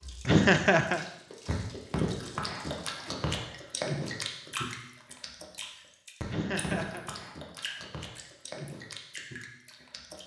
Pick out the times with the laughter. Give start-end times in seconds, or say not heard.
0.2-1.1, 6.2-7.0.